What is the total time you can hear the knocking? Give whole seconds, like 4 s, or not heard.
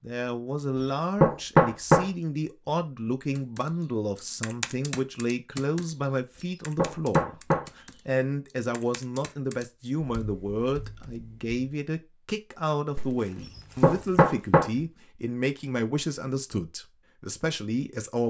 3 s.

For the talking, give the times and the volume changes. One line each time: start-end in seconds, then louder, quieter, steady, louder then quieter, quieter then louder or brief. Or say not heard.
0.0-18.2 steady.